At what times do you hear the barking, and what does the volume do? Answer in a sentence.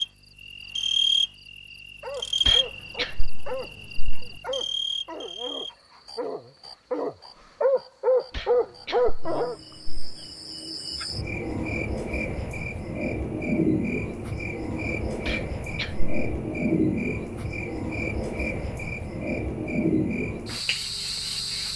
The barking can be heard from 2.0 to 9.6 s, getting louder.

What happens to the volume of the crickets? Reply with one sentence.
The volume of the crickets goes down, then up.